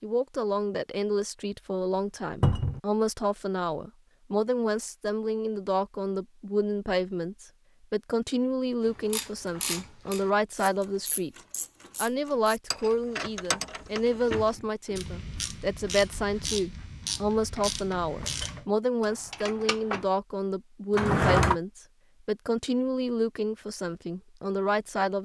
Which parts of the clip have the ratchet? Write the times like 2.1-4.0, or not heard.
8.8-20.1.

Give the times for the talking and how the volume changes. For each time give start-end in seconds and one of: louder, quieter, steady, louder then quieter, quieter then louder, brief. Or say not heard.
0.0-11.3 steady
11.9-25.2 steady.